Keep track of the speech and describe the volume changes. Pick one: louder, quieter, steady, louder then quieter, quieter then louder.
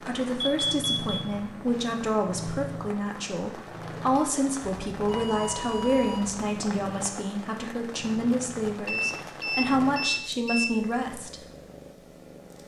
steady.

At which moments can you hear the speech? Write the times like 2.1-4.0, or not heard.
0.0-11.4.